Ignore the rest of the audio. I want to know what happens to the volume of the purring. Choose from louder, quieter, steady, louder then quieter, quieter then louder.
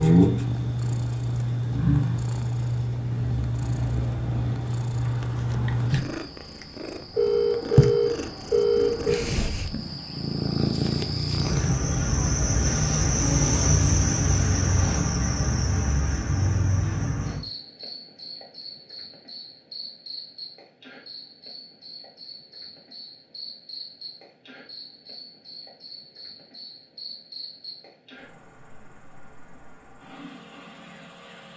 steady.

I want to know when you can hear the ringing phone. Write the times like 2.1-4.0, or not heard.
7.1-9.2.